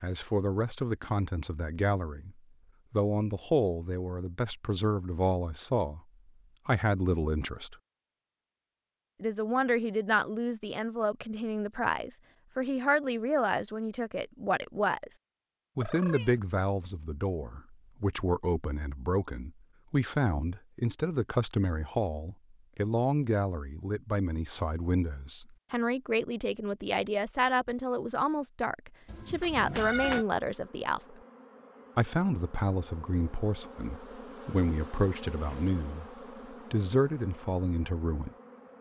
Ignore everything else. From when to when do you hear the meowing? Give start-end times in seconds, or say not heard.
15.8-16.4, 29.1-30.2.